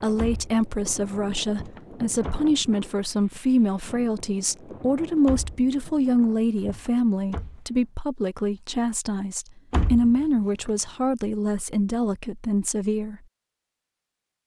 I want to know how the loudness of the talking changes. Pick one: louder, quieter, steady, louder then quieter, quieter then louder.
steady.